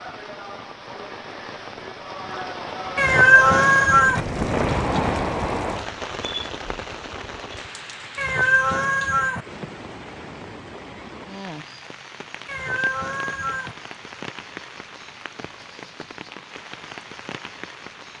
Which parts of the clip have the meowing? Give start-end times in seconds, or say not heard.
3.0-4.2, 8.2-9.4, 12.4-13.8.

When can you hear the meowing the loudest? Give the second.
3 s.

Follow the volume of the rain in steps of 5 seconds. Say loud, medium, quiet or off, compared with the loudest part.
loud, loud, medium, medium.